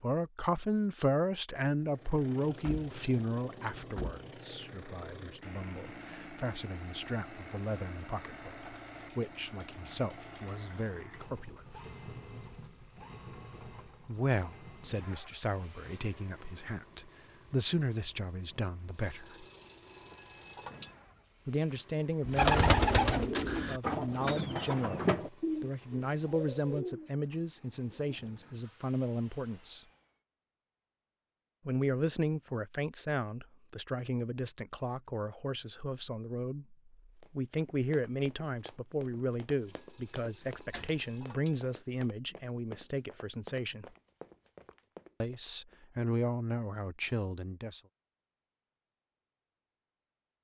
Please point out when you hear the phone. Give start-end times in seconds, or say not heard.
18.5-20.9, 39.1-41.8.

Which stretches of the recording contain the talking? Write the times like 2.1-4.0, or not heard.
0.0-11.6, 14.1-19.4, 21.4-29.9, 31.6-43.9, 45.2-47.8.